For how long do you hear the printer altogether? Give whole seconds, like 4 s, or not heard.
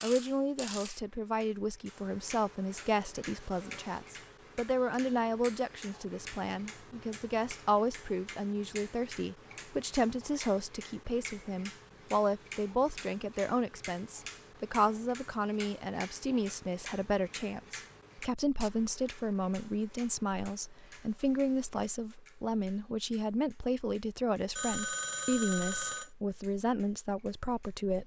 not heard.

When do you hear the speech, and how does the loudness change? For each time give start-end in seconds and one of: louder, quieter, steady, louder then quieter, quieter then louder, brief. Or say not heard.
0.0-28.0 steady.